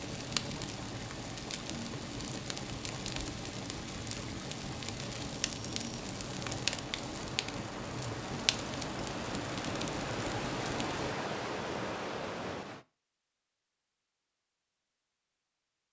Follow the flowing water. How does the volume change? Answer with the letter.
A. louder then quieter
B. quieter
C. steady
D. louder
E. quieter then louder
D.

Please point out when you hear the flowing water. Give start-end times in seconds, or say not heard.
0.0-12.8.